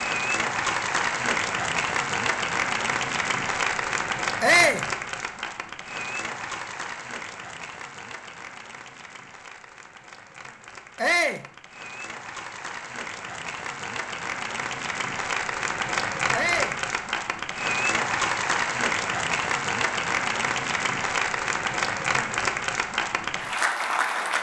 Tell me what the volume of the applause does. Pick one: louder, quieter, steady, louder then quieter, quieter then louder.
quieter then louder.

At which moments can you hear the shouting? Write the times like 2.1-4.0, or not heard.
4.4-4.8, 10.9-11.4, 16.3-16.8.